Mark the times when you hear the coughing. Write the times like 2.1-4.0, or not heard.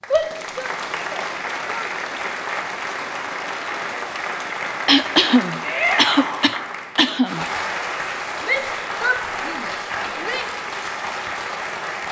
4.8-7.5.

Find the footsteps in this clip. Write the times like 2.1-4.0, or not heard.
not heard.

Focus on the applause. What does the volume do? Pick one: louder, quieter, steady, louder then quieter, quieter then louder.
steady.